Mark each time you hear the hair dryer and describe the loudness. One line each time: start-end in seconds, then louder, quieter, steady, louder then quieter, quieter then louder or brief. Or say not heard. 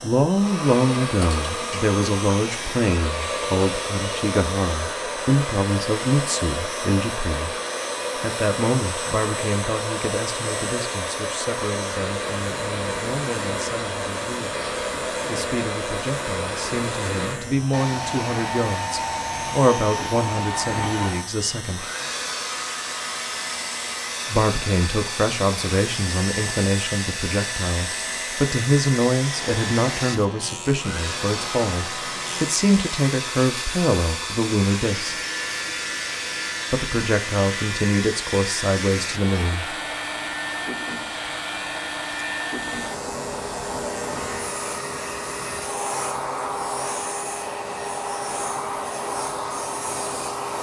0.0-50.5 steady.